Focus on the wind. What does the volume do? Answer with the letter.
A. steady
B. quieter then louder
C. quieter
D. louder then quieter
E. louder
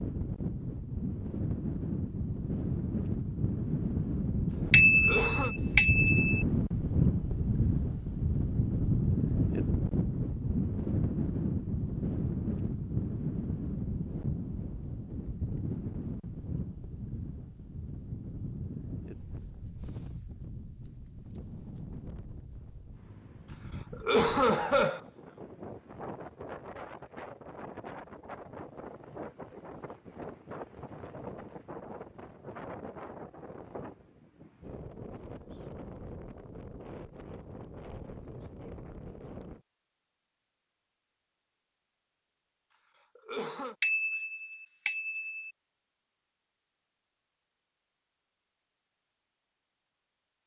C.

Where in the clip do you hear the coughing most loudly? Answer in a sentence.
The volume of the coughing peaks at 24 seconds.